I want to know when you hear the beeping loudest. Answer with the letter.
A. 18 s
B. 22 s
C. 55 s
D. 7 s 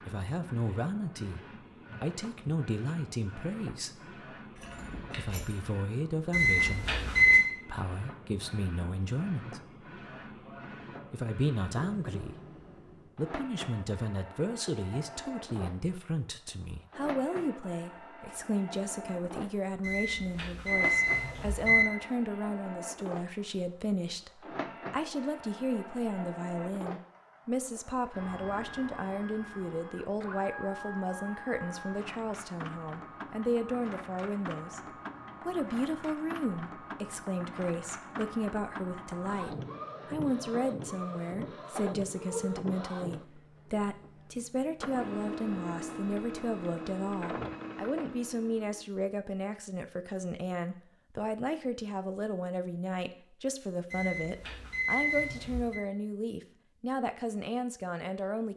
D.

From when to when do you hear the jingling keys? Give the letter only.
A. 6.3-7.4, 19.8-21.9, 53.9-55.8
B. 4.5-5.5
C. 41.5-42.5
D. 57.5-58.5
B.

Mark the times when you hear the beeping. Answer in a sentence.
You can hear the beeping from 6.3 to 7.4 s, from 19.8 to 21.9 s and from 53.9 to 55.8 s.